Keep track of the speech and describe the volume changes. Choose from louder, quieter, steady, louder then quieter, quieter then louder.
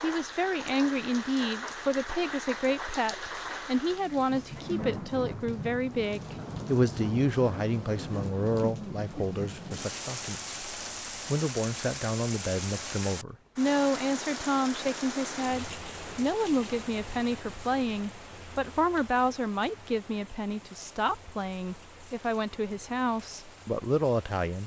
steady.